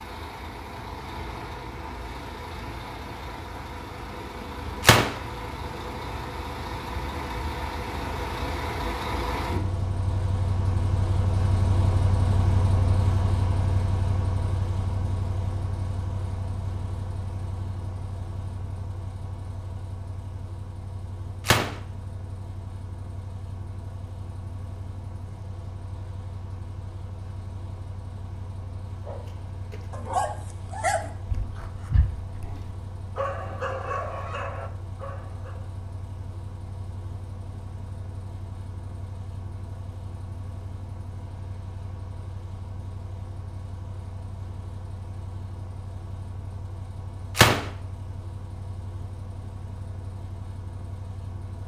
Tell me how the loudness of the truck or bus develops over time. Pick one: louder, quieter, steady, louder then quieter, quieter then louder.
quieter.